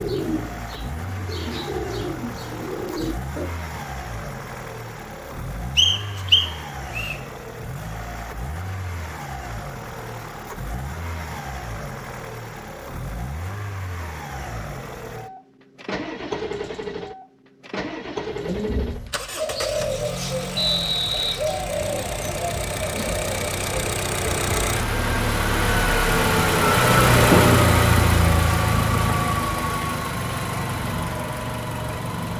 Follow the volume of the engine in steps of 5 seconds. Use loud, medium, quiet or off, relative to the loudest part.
quiet, quiet, quiet, quiet, medium, loud, medium.